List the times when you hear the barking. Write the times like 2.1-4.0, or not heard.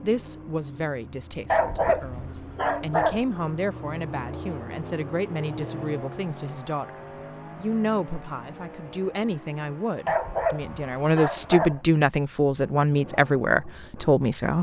1.5-3.2, 10.1-11.8.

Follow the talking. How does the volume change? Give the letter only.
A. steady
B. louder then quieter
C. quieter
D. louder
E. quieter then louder
D.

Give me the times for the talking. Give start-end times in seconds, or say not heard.
0.0-6.9, 7.5-14.5.